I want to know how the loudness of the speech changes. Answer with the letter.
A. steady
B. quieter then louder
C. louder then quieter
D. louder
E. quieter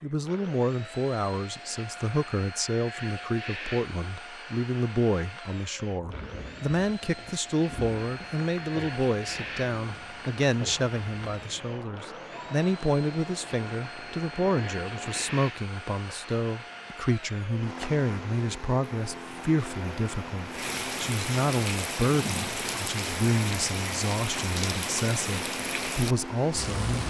A.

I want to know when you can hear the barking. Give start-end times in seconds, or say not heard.
not heard.